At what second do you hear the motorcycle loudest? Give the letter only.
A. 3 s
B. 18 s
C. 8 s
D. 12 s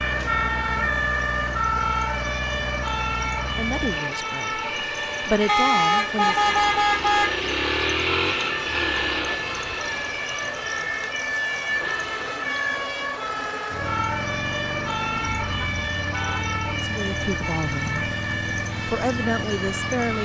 C.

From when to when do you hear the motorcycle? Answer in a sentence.
The motorcycle can be heard from 0.0 to 20.2 s.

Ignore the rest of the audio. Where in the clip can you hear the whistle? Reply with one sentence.
The whistle can't be heard in this clip.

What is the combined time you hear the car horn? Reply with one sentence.
You can hear the car horn for 3 seconds altogether.